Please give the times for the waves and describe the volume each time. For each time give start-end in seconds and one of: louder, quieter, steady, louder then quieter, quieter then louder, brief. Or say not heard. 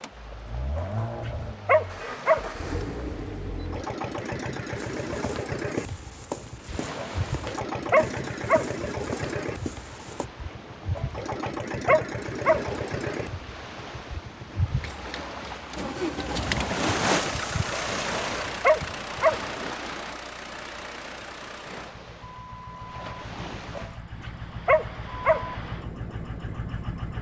0.0-27.1 louder then quieter.